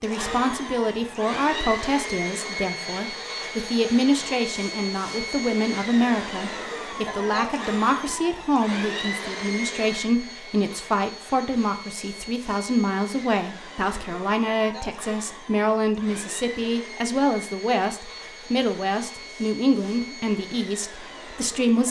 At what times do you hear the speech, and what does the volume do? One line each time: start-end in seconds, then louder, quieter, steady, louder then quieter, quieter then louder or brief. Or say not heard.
0.0-21.8 steady.